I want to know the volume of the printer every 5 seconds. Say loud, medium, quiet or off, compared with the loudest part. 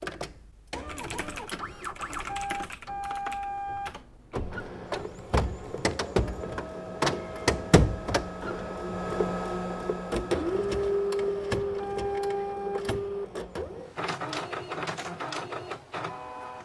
medium, loud, loud, medium.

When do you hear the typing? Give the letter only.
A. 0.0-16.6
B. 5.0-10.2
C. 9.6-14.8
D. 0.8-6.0
D.